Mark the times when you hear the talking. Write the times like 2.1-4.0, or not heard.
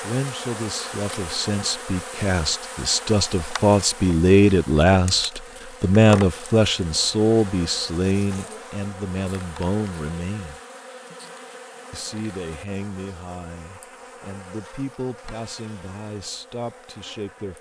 0.0-10.6, 11.9-17.5.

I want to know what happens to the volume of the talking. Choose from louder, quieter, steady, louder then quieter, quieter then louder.
louder then quieter.